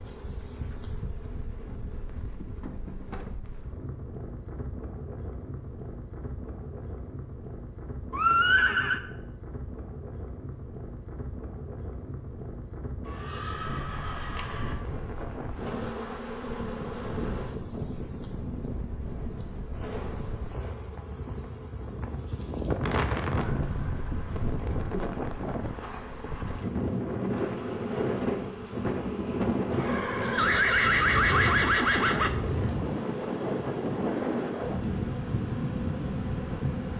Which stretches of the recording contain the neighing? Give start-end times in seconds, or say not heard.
8.1-9.0, 13.1-14.8, 29.7-32.4.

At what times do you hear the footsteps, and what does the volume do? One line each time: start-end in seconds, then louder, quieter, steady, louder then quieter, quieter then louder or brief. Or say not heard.
not heard.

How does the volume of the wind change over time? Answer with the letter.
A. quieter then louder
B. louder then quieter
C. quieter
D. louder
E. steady
D.